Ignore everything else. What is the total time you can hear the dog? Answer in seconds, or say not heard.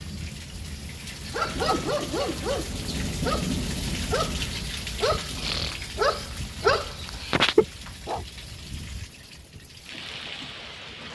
7 s.